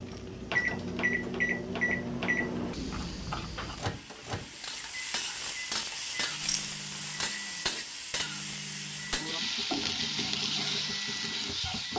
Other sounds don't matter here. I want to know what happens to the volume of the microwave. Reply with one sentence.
The loudness of the microwave goes down.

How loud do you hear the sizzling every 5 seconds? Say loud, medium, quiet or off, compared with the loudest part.
quiet, loud, loud.